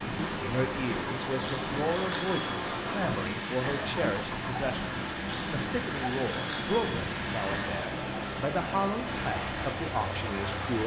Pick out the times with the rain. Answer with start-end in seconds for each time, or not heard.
0.0-10.8.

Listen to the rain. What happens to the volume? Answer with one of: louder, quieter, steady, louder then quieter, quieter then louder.
steady.